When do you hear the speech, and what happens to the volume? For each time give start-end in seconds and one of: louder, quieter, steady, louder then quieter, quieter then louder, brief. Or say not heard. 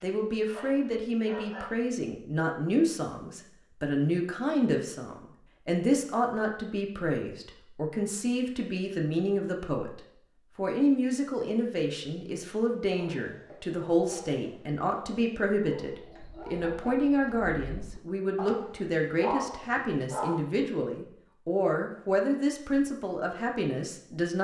0.0-9.9 steady
10.6-24.3 steady.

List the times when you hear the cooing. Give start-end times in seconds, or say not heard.
not heard.